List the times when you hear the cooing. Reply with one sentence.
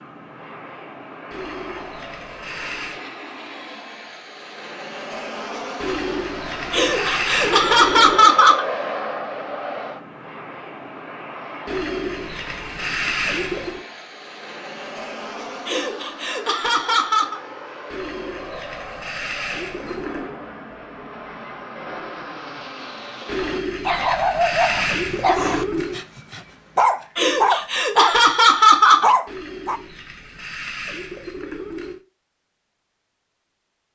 You can hear the cooing from 1.3 to 3.0 s, from 5.8 to 8.3 s, from 11.7 to 13.8 s, from 17.9 to 20.4 s, from 23.2 to 26.1 s and from 29.2 to 32.0 s.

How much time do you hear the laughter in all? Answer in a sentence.
You can hear the laughter for 6 seconds altogether.